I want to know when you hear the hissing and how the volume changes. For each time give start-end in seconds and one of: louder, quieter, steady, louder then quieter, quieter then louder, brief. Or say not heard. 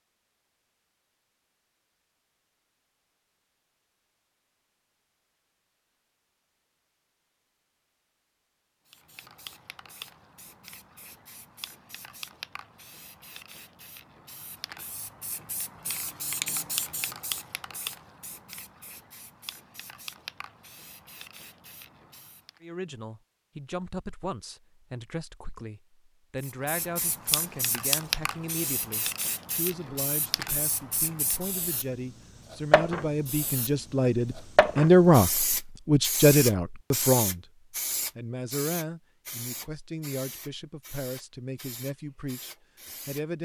8.8-22.6 louder then quieter
26.4-43.2 quieter.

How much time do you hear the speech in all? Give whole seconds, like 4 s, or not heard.
20 s.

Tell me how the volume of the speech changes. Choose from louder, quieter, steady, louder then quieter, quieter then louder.
louder then quieter.